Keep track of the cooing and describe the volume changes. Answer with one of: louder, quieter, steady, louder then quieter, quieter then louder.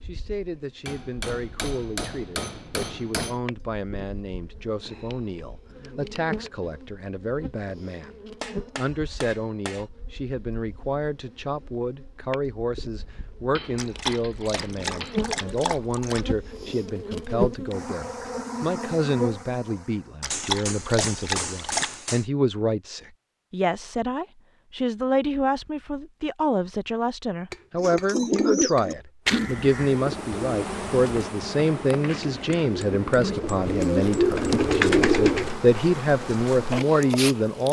quieter then louder.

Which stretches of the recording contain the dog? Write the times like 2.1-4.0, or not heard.
13.8-16.2, 20.2-22.0.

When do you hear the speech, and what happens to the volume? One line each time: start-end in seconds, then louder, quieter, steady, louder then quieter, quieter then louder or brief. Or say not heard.
0.1-37.6 louder.